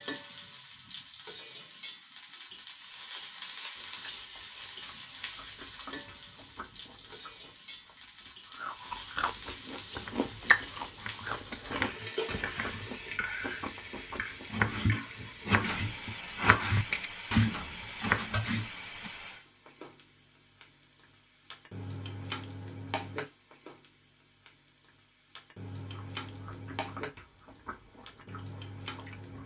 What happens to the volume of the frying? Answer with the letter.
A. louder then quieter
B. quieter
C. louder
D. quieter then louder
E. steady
B.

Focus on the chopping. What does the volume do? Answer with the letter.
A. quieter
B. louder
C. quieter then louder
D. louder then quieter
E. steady
B.